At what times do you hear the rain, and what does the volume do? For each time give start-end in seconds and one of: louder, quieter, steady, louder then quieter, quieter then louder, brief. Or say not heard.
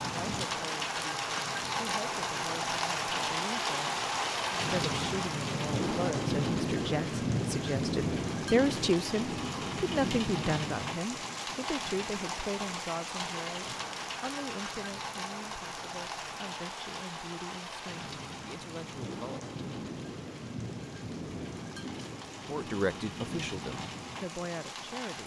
0.0-25.2 quieter.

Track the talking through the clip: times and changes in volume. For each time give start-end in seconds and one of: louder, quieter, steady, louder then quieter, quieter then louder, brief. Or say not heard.
0.0-19.5 louder then quieter
22.4-25.2 brief.